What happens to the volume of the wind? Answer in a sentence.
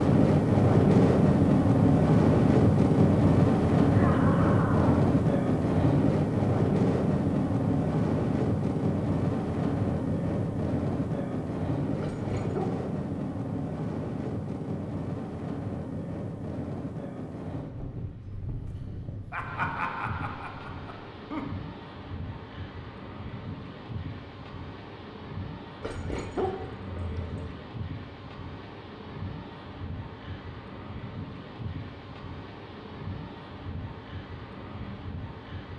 The volume of the wind goes down.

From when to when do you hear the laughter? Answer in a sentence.
The laughter can be heard from 3.9 to 5.0 s and from 19.3 to 21.4 s.